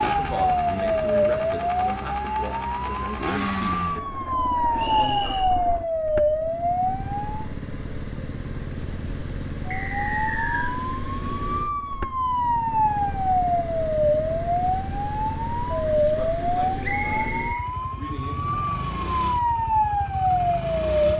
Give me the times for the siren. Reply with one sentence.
The siren can be heard from 0.0 to 7.5 s and from 9.8 to 21.1 s.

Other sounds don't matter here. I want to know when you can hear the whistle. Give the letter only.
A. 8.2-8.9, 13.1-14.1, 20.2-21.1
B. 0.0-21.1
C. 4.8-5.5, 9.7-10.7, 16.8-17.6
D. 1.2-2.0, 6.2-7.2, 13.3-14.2
C.